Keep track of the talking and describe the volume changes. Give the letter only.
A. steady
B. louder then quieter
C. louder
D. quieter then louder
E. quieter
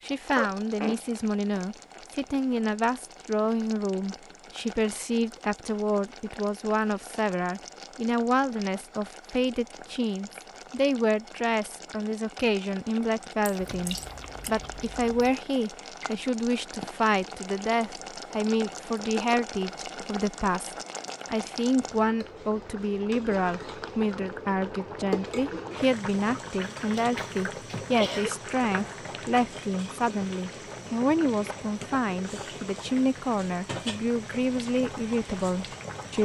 A.